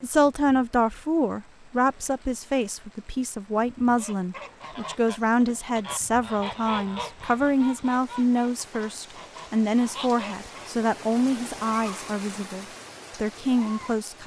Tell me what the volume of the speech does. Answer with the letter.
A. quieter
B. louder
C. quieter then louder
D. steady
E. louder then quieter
D.